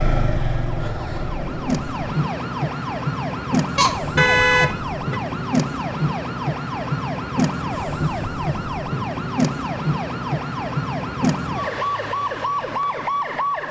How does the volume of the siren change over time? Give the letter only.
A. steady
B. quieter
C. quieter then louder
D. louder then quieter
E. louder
A.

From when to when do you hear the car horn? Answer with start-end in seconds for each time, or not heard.
3.8-5.2.